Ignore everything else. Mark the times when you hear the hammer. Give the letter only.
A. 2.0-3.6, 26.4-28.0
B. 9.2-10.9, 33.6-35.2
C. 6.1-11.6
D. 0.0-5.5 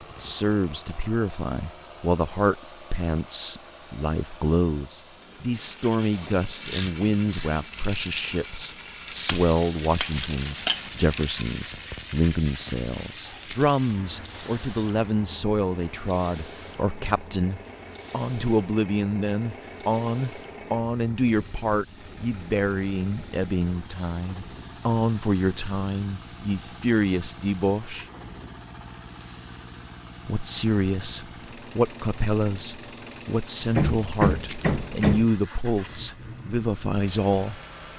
B.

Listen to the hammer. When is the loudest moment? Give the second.
34 s.